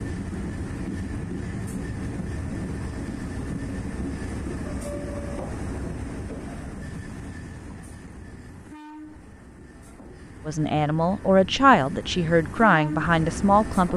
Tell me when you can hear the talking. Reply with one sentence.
You can hear the talking from 10.4 to 13.9 s.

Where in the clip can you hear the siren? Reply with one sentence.
You can't hear the siren here.